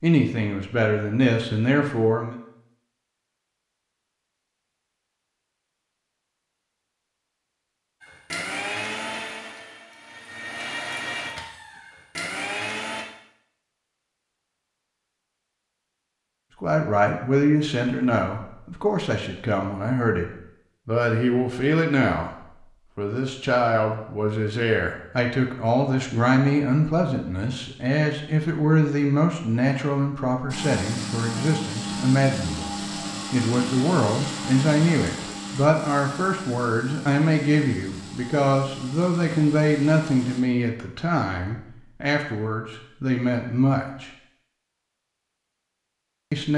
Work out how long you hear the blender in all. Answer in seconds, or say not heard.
15 s.